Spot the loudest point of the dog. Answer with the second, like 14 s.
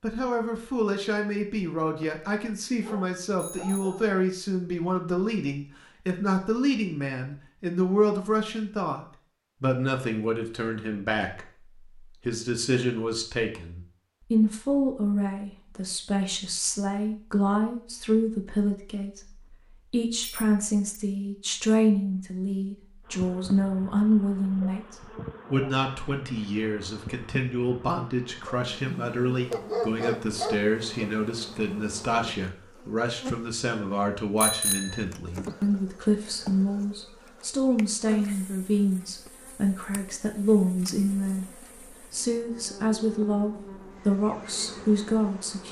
30 s.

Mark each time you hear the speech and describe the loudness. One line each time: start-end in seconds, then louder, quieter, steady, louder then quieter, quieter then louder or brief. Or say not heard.
0.0-45.6 steady.